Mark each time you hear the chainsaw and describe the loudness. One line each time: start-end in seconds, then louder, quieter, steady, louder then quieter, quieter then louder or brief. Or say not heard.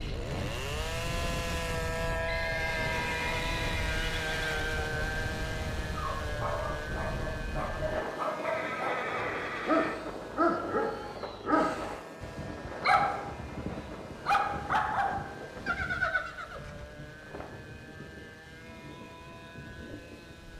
0.0-20.5 quieter.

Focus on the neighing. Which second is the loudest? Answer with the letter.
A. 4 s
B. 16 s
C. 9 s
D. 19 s
B.